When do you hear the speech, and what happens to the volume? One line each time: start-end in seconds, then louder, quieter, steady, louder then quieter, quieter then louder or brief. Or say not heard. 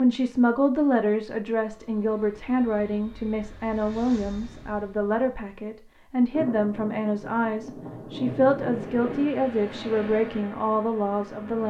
0.0-11.6 steady.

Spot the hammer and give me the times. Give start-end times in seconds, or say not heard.
not heard.